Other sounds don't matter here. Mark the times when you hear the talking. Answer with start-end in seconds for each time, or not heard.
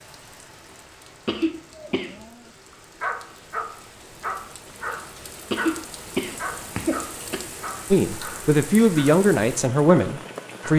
7.9-10.7.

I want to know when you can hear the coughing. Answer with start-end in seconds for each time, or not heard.
1.2-2.1, 5.5-7.5.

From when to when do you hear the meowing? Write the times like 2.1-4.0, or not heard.
not heard.